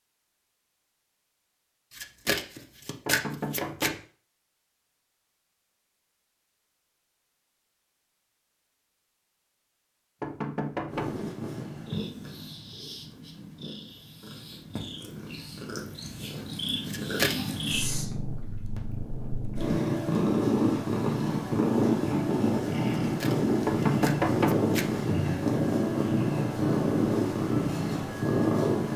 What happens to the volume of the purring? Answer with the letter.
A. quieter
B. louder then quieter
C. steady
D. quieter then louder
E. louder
E.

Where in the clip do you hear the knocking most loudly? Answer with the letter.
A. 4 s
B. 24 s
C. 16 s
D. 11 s
B.